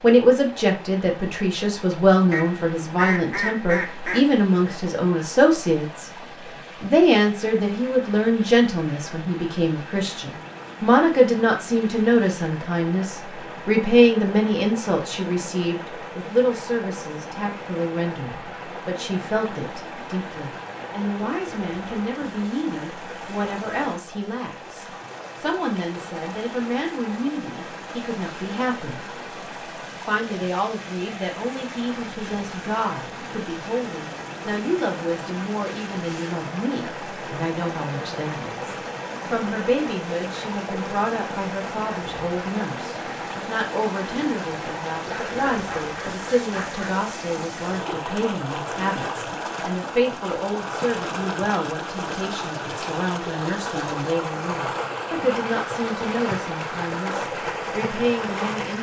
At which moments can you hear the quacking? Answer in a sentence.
You can hear the quacking from 2.3 to 4.2 s and from 45.1 to 47.0 s.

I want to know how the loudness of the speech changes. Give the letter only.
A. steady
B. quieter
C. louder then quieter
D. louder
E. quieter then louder
B.